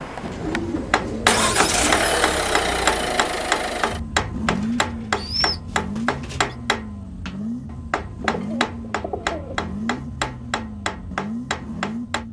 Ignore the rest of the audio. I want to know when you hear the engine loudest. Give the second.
2 s.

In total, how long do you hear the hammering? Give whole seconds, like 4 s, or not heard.
11 s.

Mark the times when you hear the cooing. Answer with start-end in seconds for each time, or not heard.
0.3-2.1, 4.5-6.5, 8.2-10.0.